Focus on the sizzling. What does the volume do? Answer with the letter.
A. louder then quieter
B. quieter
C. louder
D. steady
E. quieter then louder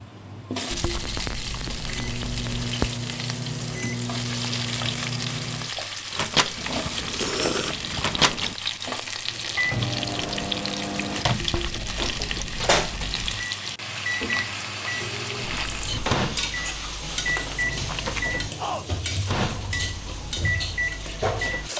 D.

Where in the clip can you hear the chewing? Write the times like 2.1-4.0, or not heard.
0.7-2.5, 6.5-8.6, 11.4-13.4, 17.1-18.4.